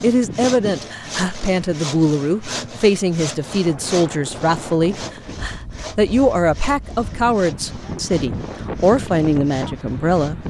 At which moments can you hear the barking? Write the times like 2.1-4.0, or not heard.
not heard.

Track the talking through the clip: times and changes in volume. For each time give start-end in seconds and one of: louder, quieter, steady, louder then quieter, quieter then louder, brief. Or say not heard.
0.0-10.4 steady.